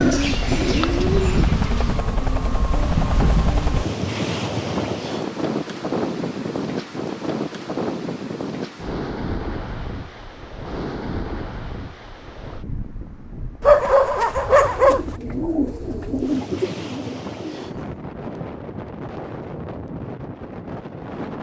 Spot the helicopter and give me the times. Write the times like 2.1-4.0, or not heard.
0.2-3.9.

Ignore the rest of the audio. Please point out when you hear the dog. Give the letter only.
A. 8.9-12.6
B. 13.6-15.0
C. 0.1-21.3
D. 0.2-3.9
B.